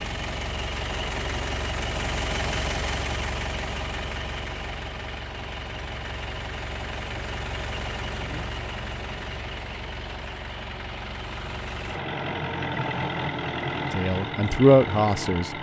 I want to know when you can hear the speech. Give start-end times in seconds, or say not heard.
13.9-15.5.